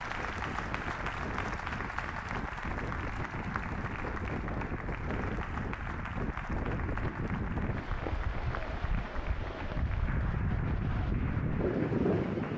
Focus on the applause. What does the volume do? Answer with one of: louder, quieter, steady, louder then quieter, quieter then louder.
quieter.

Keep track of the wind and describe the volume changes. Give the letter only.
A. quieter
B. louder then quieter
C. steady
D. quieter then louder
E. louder
E.